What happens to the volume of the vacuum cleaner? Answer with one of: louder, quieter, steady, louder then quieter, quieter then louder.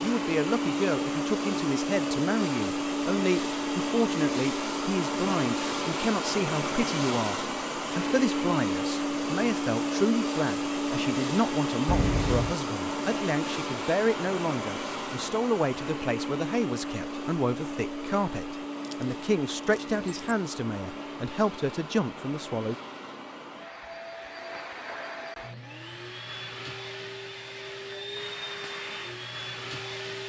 quieter.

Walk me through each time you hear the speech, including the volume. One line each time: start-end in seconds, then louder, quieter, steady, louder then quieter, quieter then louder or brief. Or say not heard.
0.0-22.8 steady.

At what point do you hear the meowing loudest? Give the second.
12 s.